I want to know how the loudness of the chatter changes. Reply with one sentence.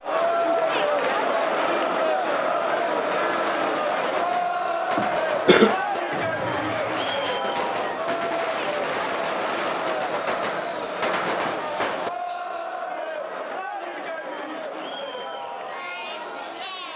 The loudness of the chatter goes down.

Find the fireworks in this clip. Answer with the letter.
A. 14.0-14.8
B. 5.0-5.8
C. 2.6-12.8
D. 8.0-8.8
C.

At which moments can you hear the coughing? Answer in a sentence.
The coughing can be heard from 5.0 to 5.8 s.